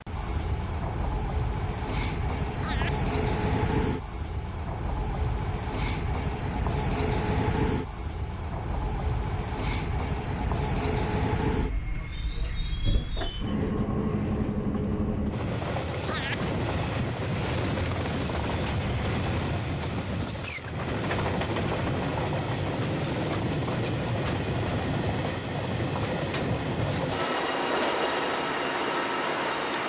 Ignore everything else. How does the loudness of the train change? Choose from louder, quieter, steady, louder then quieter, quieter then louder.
steady.